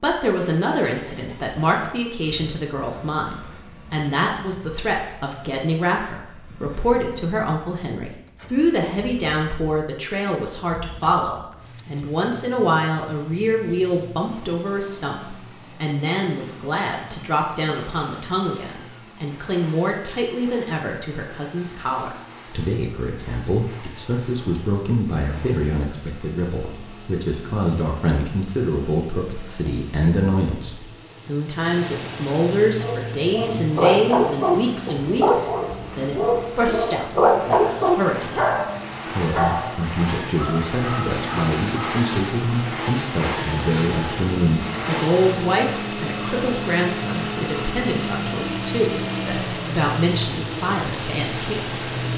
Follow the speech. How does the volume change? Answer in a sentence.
The volume of the speech stays about the same.